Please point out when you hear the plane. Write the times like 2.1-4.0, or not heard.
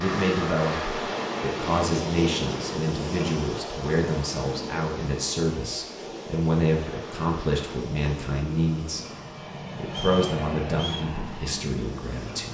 0.0-2.8, 6.8-12.5.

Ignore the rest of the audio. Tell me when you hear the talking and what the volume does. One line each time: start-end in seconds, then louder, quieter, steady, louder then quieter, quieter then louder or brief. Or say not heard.
0.0-12.5 steady.